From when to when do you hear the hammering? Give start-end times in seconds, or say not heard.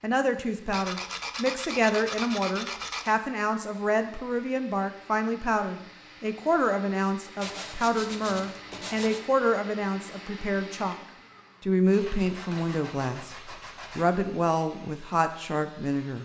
not heard.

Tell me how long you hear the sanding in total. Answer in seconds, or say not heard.
6 s.